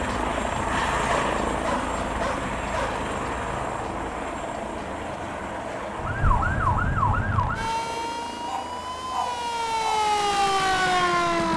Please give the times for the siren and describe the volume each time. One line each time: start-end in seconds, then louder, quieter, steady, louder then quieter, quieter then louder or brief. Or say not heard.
6.0-11.5 quieter then louder.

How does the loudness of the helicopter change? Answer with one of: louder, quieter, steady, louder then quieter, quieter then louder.
quieter.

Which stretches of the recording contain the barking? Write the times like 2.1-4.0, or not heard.
1.1-2.9, 8.4-10.0.